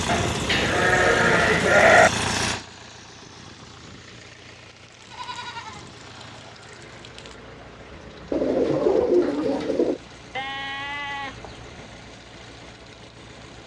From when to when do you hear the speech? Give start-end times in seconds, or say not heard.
not heard.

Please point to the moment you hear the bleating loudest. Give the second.
2 s.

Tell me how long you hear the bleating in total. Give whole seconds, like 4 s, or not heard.
6 s.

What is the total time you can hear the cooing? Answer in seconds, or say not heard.
2 s.